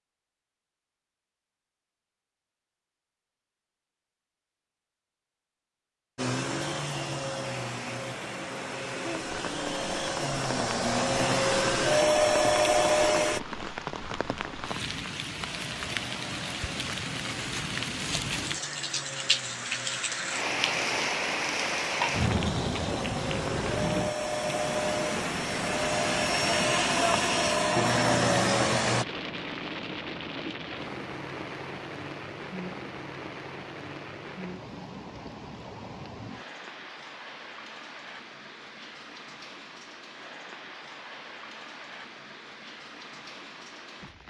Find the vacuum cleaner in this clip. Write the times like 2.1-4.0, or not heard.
6.2-13.4, 15.4-29.1.